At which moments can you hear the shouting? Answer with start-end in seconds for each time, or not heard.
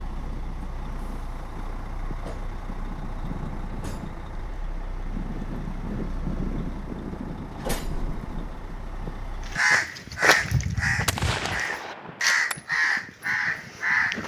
not heard.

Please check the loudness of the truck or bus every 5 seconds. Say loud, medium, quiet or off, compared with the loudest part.
loud, loud, off.